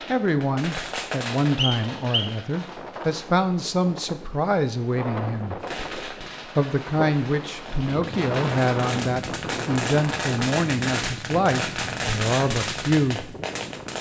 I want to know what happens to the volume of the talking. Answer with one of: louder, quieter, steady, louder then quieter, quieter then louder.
steady.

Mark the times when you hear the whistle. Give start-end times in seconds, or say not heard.
1.6-2.4.